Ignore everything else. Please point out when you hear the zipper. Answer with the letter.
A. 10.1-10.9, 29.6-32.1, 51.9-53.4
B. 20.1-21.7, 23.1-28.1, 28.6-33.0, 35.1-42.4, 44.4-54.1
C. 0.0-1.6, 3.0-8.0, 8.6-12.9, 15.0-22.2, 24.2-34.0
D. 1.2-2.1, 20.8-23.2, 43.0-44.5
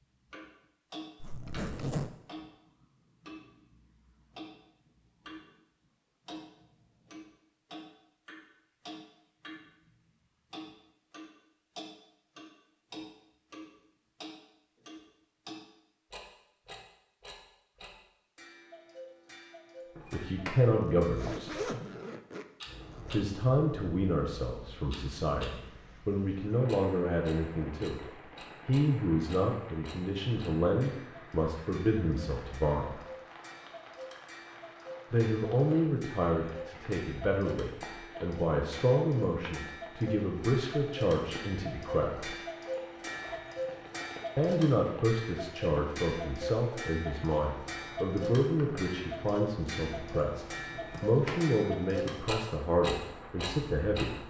D.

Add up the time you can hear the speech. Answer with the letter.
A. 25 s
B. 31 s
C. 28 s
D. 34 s
C.